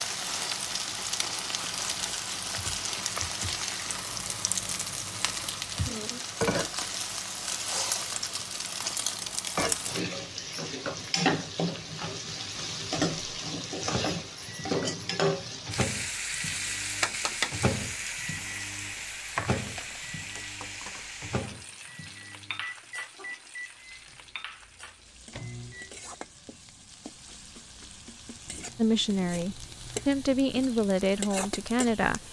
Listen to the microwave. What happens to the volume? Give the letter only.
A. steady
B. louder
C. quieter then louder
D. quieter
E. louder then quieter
D.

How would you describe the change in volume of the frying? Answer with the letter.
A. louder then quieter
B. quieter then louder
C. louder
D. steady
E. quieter
E.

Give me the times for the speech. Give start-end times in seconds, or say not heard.
28.8-32.2.